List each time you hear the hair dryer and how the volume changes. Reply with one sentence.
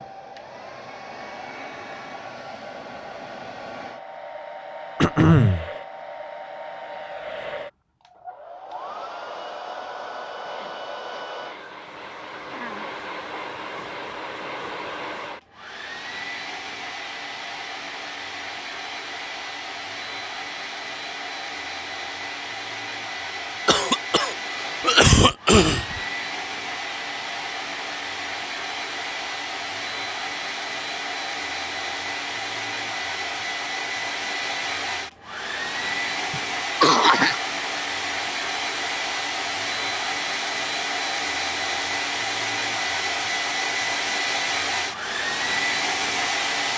The hair dryer can be heard from 0.0 to 46.7 s, getting louder.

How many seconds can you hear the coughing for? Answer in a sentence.
You can hear the coughing for 4 seconds altogether.